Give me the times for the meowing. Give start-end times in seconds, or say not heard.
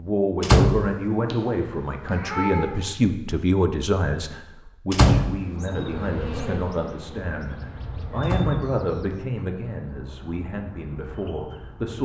1.3-2.8.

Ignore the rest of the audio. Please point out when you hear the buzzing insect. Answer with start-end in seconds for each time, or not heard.
5.3-8.2.